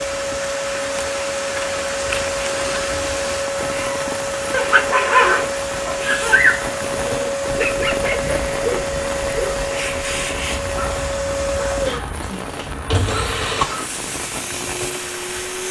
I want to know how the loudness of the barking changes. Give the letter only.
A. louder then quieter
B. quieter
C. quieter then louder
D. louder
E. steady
B.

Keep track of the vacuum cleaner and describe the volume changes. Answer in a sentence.
The volume of the vacuum cleaner stays about the same.